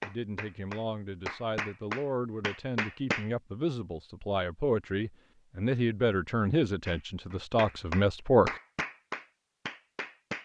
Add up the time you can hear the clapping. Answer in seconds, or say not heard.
7 s.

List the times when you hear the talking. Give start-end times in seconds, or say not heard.
0.0-8.6.